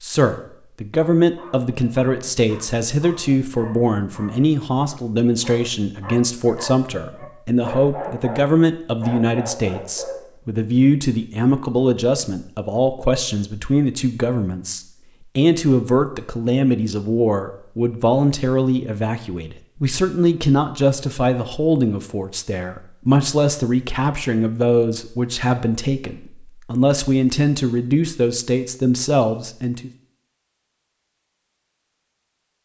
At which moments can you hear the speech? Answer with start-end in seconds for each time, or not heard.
0.0-29.9.